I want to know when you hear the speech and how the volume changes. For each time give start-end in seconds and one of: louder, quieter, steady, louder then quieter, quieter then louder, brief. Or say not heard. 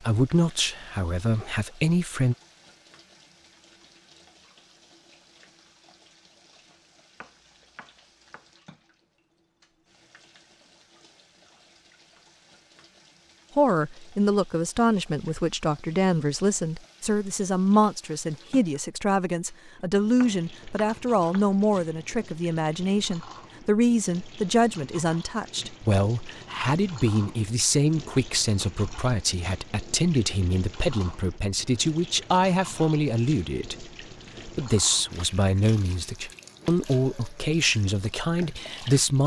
0.0-2.4 brief
13.6-39.2 steady.